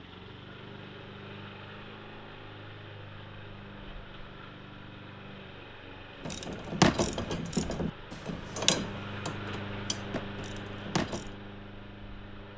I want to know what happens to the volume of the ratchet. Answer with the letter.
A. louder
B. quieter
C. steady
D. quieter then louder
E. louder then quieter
B.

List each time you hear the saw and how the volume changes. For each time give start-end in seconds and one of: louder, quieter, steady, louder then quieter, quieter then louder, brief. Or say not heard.
not heard.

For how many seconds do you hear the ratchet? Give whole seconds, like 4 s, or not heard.
5 s.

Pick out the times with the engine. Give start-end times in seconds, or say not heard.
0.0-12.5.